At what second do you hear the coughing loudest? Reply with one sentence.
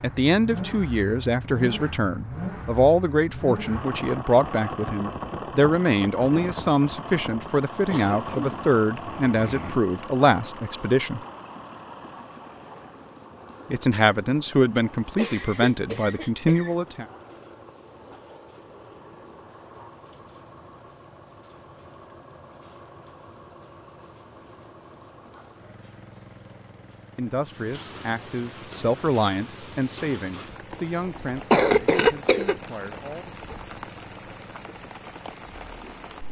The volume of the coughing peaks at 32 seconds.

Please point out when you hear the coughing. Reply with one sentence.
The coughing can be heard from 7.8 to 9.8 s, from 15.2 to 16.8 s and from 31.5 to 32.5 s.